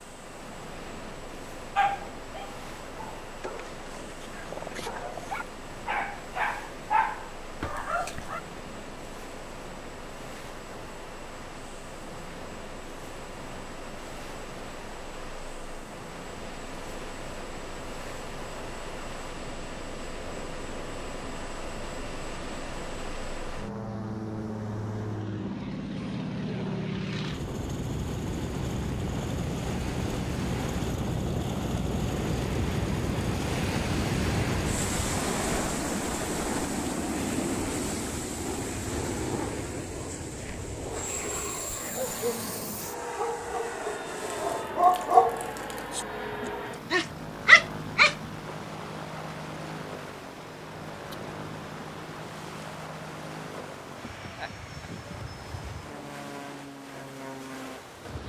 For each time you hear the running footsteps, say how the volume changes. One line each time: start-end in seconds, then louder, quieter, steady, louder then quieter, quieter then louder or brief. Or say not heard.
not heard.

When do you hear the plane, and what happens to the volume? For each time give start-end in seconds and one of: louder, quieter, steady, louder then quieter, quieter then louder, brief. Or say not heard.
0.0-58.2 louder then quieter.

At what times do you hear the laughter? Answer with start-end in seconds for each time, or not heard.
53.9-55.4.